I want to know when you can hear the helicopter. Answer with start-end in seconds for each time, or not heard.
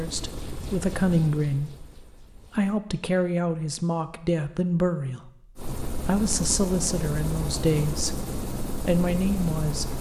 0.0-2.8, 5.5-9.9.